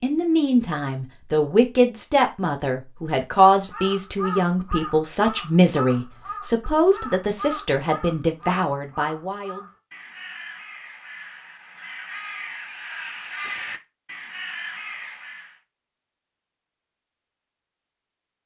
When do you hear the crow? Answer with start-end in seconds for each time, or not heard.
3.5-15.6.